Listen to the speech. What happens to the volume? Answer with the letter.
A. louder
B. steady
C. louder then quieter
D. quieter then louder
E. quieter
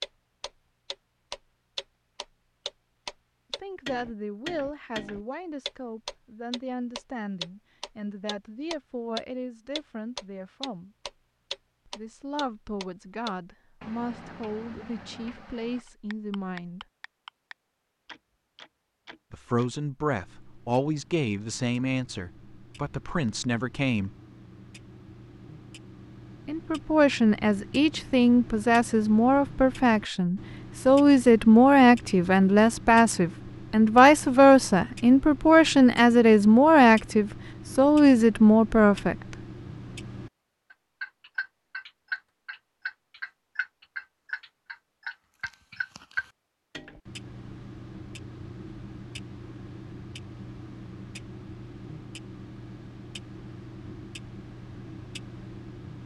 A.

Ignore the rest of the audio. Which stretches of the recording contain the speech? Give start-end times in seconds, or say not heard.
3.6-10.9, 11.8-16.9, 19.3-24.1, 26.4-39.4.